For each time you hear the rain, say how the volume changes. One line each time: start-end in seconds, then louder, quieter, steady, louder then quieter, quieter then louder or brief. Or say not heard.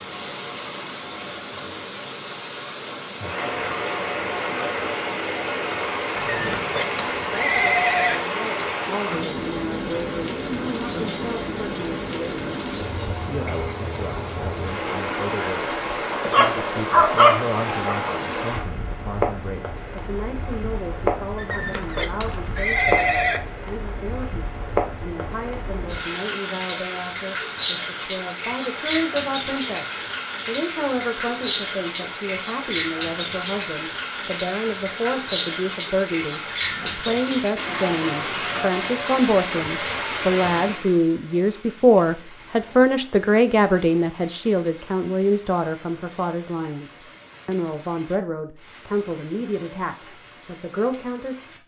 0.0-51.6 quieter.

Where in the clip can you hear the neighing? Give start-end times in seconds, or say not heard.
6.2-8.2, 21.4-23.4, 36.5-37.5.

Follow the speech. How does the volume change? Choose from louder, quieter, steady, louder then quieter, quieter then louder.
louder.